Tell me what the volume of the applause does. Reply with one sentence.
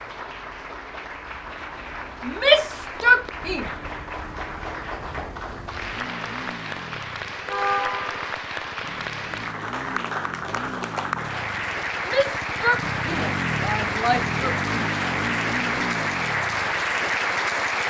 The loudness of the applause goes up.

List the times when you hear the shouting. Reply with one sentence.
You can hear the shouting from 2.2 to 3.6 s and from 12.1 to 14.6 s.